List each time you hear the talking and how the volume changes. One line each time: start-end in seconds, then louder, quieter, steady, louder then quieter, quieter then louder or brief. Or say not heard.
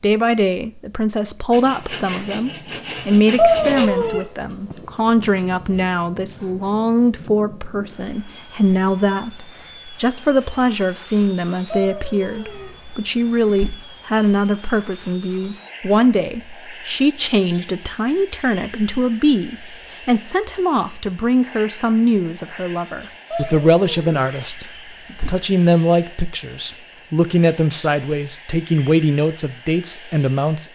0.0-30.7 steady.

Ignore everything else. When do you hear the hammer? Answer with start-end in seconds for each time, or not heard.
not heard.